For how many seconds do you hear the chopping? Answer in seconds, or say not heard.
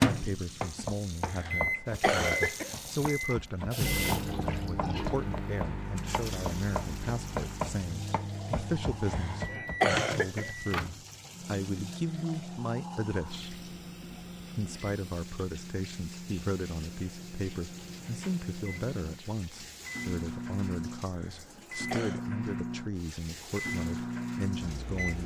10 s.